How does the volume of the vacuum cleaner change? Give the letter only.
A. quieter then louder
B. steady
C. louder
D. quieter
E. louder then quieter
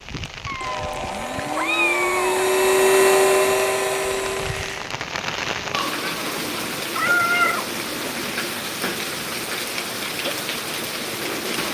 E.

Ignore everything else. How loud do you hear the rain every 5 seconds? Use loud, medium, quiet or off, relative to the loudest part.
medium, loud, loud.